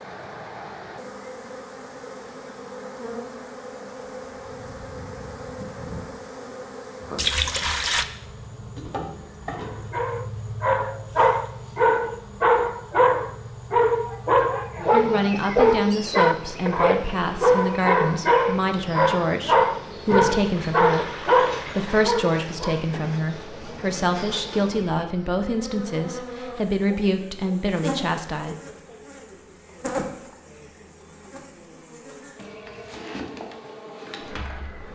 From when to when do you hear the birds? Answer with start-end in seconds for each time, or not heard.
not heard.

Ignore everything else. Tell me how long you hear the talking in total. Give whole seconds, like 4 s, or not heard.
14 s.